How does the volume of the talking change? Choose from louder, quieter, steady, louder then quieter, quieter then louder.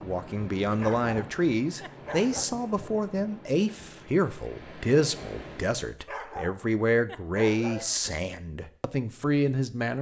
steady.